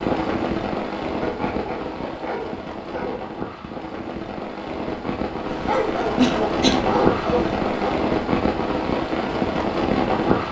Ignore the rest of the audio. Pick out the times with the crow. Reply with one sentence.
You can't hear the crow here.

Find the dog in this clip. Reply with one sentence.
The dog can be heard from 1.2 to 3.3 s and from 5.5 to 7.9 s.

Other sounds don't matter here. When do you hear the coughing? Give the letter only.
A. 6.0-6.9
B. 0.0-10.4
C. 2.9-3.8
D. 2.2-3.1
A.